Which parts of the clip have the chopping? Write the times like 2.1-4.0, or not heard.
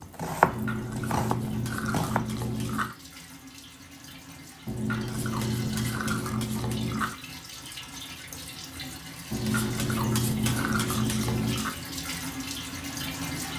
0.0-2.4.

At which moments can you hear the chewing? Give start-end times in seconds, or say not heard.
0.4-3.0, 4.7-7.2, 9.3-11.8.